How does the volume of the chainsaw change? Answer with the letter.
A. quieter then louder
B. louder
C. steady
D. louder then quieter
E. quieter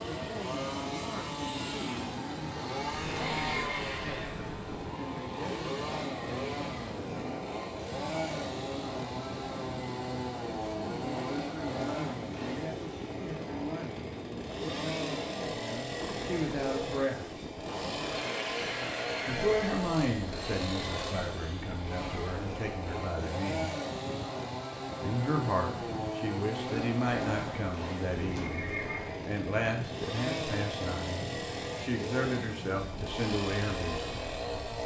C.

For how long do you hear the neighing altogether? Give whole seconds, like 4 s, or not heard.
5 s.